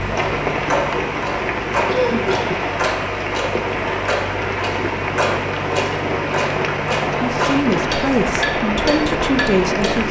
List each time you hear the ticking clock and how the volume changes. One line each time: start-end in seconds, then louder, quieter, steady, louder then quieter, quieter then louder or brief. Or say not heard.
0.0-10.0 steady.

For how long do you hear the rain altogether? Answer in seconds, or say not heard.
10 s.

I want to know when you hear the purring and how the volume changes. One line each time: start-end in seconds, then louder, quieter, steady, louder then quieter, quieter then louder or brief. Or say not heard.
not heard.